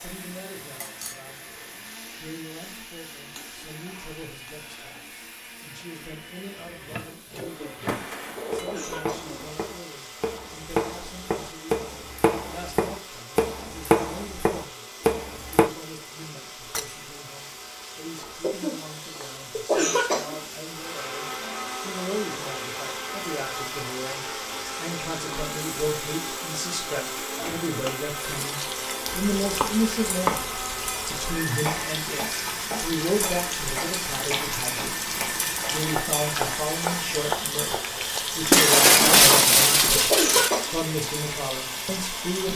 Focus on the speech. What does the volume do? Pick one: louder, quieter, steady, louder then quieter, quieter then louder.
louder.